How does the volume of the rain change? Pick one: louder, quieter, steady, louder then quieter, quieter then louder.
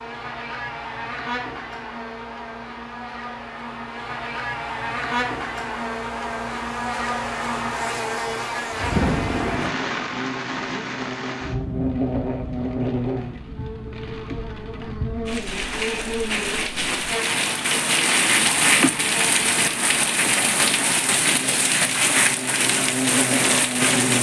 quieter then louder.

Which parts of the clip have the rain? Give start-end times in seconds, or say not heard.
8.7-24.1.